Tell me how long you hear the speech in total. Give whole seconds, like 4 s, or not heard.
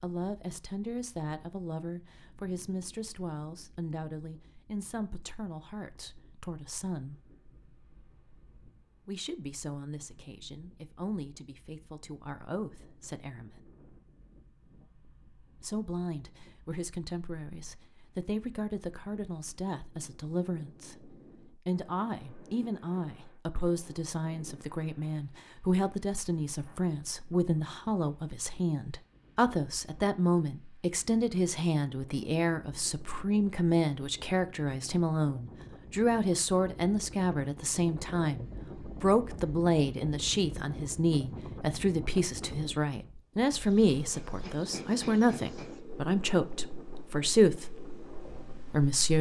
44 s.